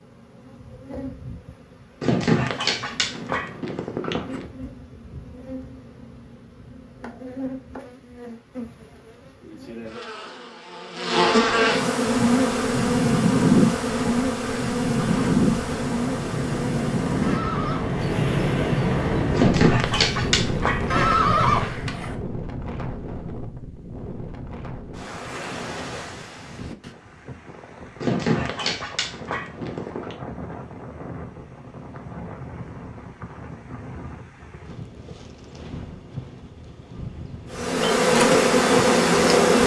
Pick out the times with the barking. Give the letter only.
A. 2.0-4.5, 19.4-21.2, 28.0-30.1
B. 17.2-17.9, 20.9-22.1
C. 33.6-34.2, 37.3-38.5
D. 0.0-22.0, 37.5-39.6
A.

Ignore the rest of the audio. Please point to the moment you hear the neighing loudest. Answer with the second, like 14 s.
21 s.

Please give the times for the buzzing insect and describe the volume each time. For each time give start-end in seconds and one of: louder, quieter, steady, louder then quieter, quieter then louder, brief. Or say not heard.
0.0-22.0 louder then quieter
37.5-39.6 brief.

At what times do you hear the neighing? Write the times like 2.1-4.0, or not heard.
17.2-17.9, 20.9-22.1.